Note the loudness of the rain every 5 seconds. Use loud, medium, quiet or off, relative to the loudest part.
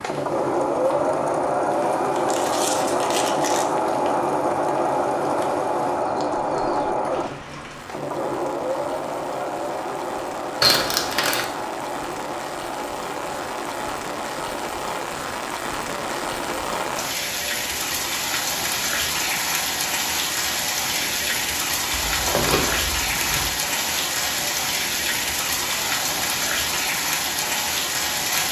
quiet, quiet, medium, loud, loud, loud.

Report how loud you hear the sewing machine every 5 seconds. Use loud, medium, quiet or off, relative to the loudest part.
loud, loud, medium, quiet, quiet, quiet.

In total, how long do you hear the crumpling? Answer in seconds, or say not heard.
4 s.